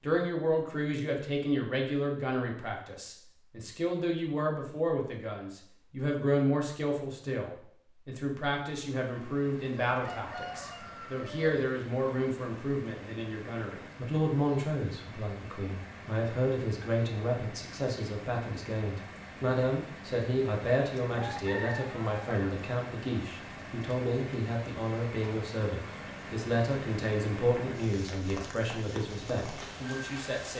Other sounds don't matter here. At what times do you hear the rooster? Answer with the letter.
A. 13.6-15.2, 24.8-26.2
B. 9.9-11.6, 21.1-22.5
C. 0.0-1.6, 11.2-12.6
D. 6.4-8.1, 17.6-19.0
B.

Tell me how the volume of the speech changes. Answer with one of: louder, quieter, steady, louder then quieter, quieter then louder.
steady.